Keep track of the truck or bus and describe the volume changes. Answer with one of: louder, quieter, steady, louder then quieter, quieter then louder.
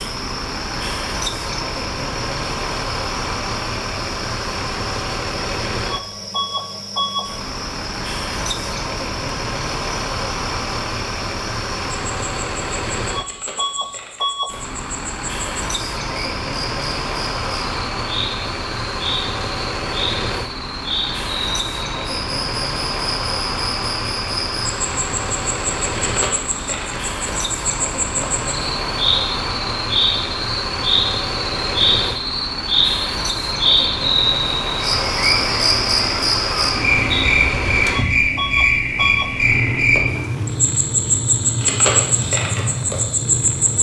steady.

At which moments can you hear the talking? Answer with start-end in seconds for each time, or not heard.
not heard.